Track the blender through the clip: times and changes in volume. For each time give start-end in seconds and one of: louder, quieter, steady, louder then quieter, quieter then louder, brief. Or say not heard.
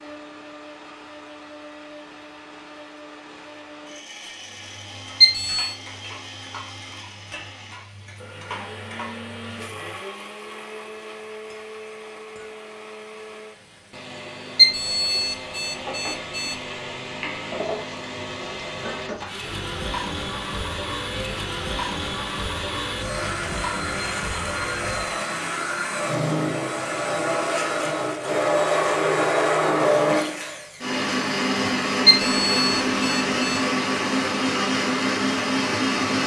0.0-36.2 louder.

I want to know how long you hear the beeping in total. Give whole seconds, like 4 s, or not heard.
4 s.